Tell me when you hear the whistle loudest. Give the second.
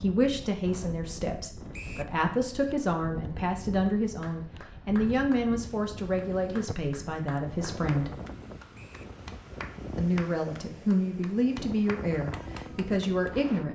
2 s.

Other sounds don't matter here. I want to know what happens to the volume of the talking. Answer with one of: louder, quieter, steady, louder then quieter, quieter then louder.
steady.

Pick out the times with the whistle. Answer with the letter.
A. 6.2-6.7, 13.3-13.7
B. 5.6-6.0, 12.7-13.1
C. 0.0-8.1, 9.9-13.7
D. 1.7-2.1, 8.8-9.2
D.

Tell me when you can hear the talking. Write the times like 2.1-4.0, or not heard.
0.0-8.1, 9.9-13.7.